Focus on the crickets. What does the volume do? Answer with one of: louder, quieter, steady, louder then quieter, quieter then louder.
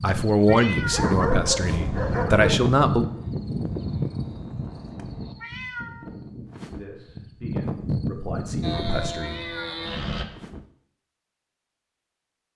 quieter then louder.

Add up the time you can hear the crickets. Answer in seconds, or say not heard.
9 s.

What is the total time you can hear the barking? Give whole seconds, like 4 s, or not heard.
2 s.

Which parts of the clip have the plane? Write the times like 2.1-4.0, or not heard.
1.6-5.3, 8.6-10.2.